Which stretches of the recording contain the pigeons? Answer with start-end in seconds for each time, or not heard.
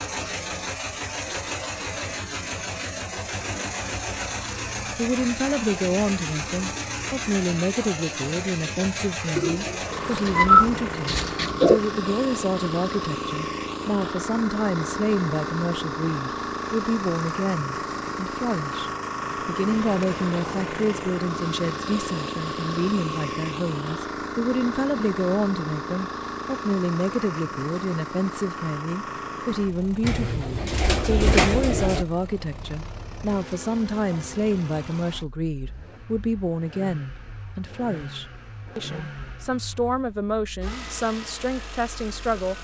9.3-11.8, 30.0-32.0.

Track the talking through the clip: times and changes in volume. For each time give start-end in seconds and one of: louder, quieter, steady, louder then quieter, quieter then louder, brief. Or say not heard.
5.0-42.5 steady.